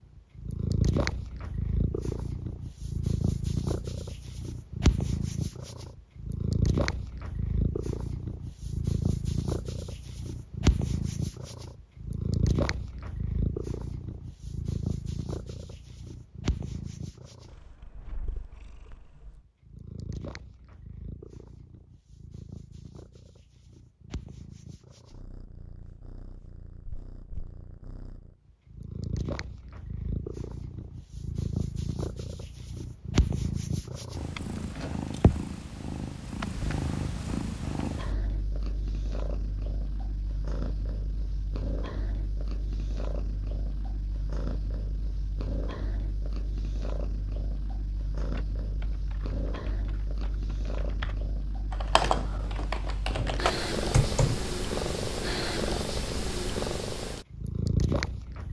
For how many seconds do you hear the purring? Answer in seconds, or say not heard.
58 s.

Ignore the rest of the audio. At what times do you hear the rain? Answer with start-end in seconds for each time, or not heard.
not heard.